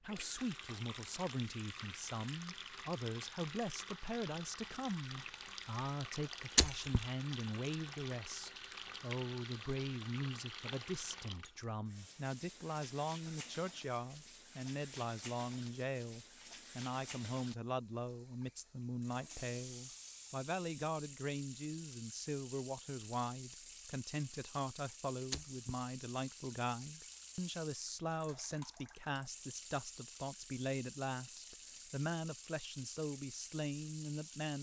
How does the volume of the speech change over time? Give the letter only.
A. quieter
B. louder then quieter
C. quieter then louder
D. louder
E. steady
E.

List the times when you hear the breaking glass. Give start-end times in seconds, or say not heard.
6.5-7.0, 25.3-25.8.